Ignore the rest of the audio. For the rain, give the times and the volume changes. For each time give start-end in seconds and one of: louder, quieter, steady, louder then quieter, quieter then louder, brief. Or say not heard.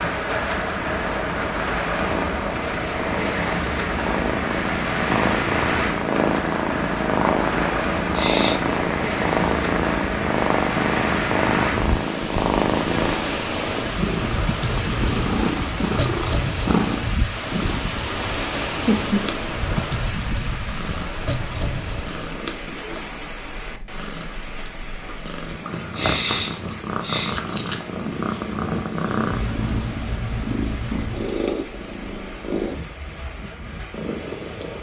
0.0-34.7 quieter.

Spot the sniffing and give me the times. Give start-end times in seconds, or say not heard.
7.7-8.6, 25.5-27.4.